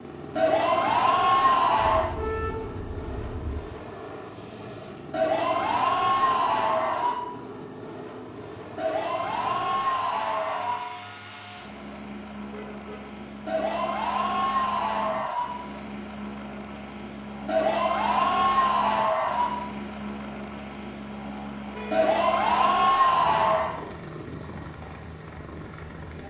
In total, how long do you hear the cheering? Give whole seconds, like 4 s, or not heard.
12 s.